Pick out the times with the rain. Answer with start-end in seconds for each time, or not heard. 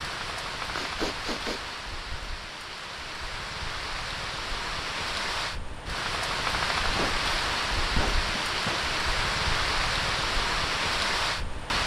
0.0-11.8.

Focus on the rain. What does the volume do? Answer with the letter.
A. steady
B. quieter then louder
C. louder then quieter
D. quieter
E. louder
E.